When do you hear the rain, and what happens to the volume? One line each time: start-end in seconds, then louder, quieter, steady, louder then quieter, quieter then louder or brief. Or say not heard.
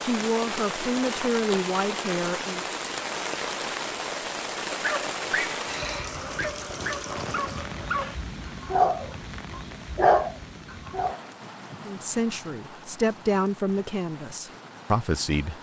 0.0-15.5 quieter.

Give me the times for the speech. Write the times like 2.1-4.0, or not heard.
0.0-2.6, 11.8-15.5.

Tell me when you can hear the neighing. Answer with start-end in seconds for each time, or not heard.
not heard.